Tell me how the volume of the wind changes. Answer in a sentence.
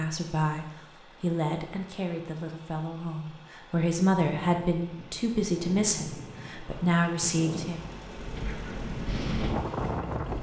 The volume of the wind goes up.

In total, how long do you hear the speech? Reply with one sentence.
You can hear the speech for 8 seconds altogether.